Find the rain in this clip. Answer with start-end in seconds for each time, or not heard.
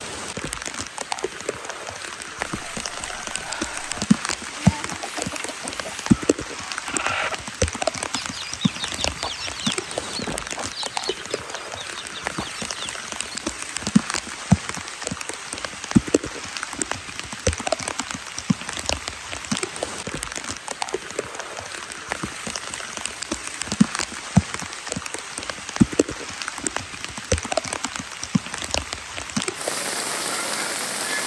0.0-31.2.